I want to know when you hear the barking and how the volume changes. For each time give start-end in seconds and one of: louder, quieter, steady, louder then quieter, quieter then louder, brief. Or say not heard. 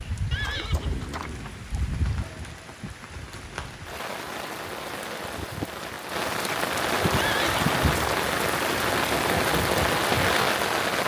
not heard.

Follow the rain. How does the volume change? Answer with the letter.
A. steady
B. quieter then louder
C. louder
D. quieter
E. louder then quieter
C.